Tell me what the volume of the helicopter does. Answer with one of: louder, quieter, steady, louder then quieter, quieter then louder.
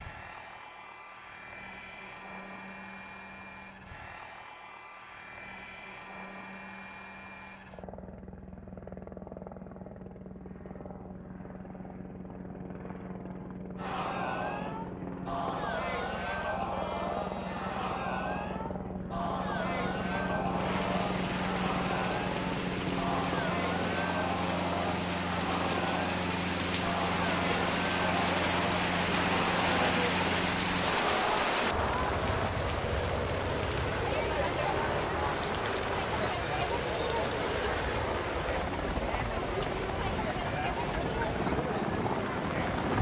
louder.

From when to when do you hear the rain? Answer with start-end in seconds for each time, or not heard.
20.4-42.9.